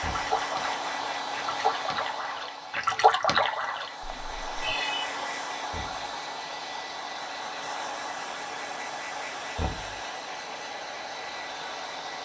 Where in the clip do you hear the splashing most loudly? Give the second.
3 s.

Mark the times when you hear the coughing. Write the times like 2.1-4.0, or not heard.
4.6-5.2.